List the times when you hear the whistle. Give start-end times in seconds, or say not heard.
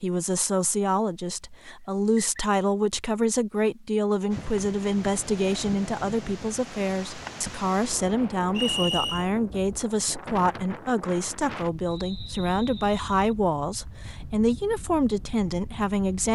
1.6-2.4, 8.6-9.2, 11.8-13.3.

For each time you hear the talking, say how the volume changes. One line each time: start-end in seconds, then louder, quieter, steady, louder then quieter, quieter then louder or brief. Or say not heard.
0.0-16.3 steady.